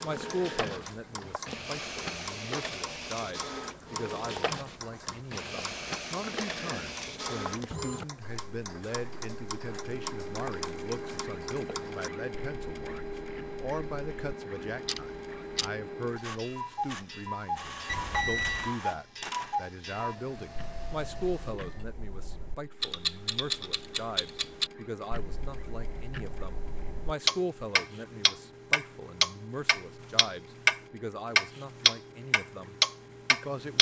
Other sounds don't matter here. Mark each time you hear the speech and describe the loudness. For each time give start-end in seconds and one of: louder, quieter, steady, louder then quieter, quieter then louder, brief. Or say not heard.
0.0-33.7 steady.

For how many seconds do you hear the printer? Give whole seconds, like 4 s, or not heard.
34 s.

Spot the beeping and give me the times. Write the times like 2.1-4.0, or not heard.
17.9-18.8.